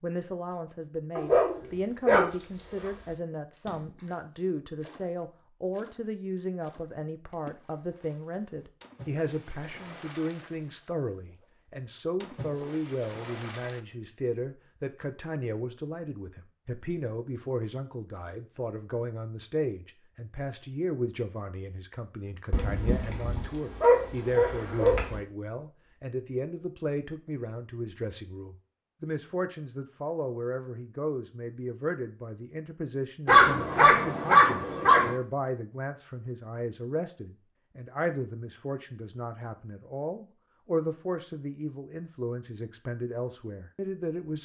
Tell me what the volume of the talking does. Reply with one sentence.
The volume of the talking stays about the same.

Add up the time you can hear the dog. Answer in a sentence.
You can hear the dog for 6 seconds altogether.